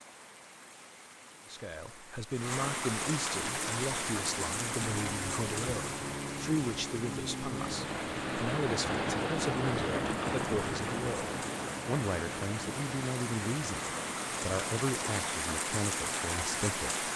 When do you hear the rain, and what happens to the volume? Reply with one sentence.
You can hear the rain from 0.0 to 17.1 s, getting quieter then louder.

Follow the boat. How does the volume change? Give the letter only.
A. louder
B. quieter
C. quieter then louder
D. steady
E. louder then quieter
E.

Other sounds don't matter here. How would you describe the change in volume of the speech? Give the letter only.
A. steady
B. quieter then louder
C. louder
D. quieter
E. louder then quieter
A.